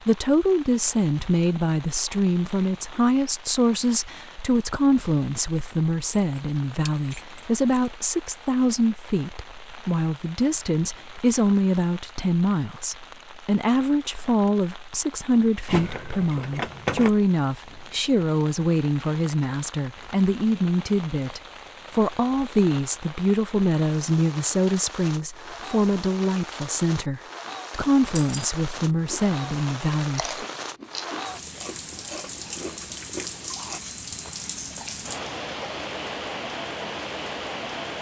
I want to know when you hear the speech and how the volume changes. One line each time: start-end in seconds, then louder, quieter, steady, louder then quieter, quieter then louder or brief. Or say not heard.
0.1-30.4 steady.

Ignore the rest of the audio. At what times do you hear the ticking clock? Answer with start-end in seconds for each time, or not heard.
not heard.